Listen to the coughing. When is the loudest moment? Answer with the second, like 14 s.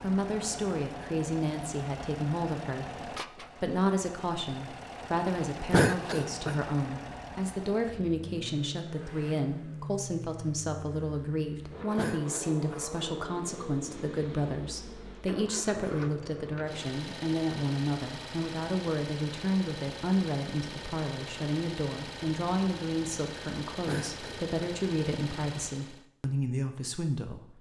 6 s.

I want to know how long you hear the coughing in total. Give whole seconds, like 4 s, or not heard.
2 s.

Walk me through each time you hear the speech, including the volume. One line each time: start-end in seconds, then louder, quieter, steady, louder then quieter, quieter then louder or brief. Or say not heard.
0.0-27.5 steady.